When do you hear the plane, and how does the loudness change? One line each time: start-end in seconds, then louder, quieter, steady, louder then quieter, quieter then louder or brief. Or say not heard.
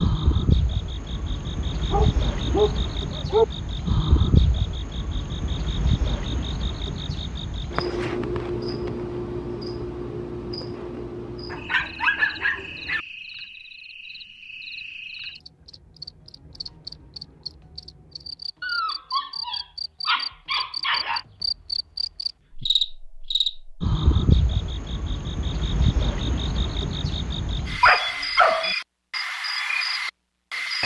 not heard.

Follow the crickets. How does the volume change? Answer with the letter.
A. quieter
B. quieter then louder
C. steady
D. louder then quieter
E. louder
B.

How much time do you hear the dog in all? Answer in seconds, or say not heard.
7 s.